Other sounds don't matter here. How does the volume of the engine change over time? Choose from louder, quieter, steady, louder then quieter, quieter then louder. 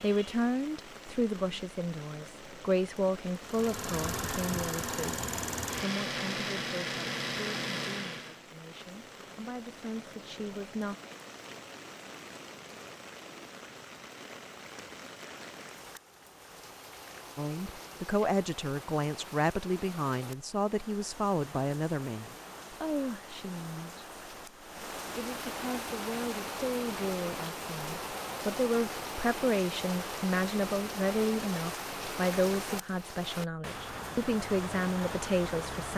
steady.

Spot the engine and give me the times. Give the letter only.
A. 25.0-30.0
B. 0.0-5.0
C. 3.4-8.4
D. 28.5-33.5
C.